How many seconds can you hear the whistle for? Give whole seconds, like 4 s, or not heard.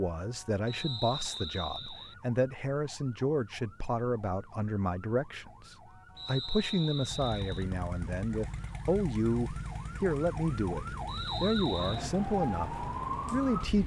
4 s.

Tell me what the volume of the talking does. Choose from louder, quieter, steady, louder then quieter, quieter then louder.
steady.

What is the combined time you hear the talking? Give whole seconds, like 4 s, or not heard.
14 s.